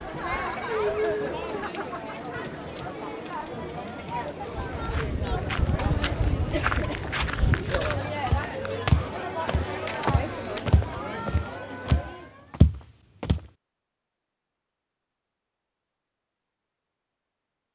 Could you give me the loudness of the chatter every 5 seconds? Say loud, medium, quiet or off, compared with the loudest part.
loud, loud, loud, off.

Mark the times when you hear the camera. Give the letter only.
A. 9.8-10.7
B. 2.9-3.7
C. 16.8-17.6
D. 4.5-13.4
A.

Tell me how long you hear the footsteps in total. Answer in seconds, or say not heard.
9 s.